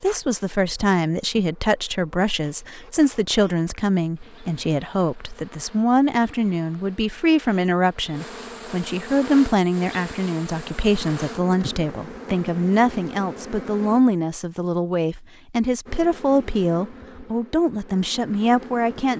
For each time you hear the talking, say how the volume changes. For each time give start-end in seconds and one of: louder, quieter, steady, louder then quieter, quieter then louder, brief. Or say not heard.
0.0-19.1 steady.